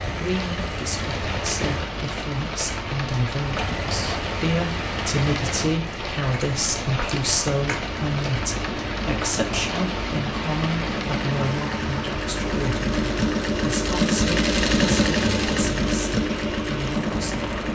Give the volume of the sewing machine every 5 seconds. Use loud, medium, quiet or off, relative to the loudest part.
medium, medium, loud, loud.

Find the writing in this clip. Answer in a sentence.
You can't hear the writing here.